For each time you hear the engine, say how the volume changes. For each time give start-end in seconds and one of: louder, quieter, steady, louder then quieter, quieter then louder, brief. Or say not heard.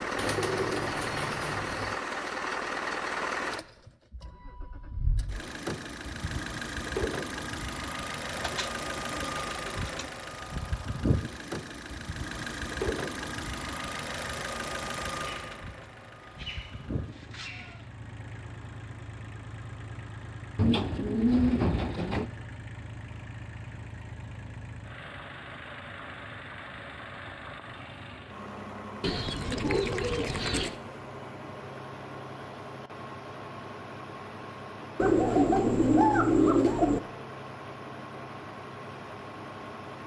0.0-40.0 quieter.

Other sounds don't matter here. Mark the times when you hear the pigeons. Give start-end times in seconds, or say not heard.
0.1-1.9, 8.3-10.1, 15.2-17.9, 20.6-22.3, 29.0-30.8, 35.0-37.0.